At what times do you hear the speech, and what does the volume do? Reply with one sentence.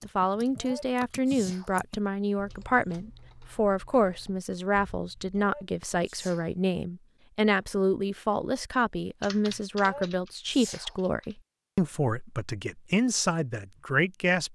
The speech can be heard from 0.1 to 14.5 s, at a steady volume.